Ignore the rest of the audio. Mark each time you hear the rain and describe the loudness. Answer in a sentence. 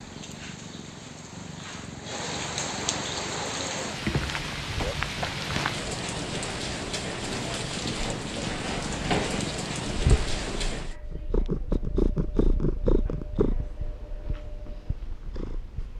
You can hear the rain from 0.0 to 10.9 s, getting louder.